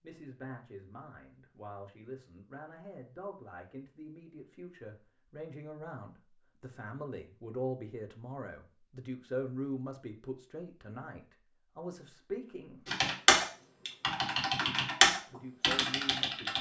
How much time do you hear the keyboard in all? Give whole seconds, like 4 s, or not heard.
4 s.